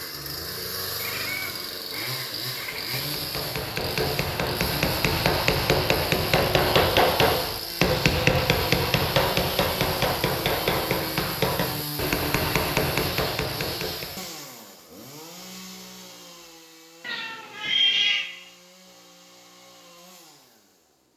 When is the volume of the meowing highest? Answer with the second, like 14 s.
18 s.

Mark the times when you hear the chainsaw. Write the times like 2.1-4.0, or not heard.
0.0-21.1.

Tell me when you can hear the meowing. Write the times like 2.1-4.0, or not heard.
0.9-3.1, 17.0-18.3.